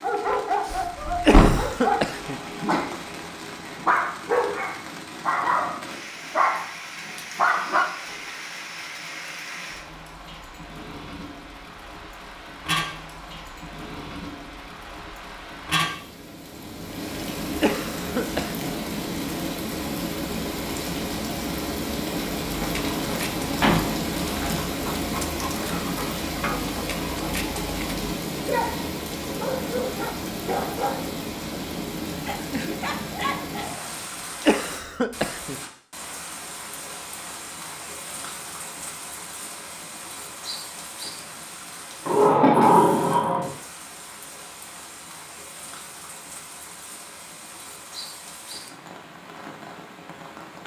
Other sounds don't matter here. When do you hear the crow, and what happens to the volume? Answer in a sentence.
The crow can't be heard in this clip.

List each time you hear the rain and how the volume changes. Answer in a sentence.
The rain can be heard from 0.0 to 50.6 s, getting louder then quieter.